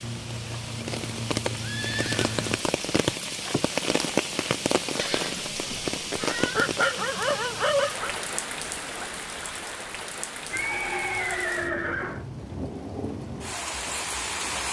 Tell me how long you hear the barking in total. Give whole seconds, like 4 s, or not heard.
2 s.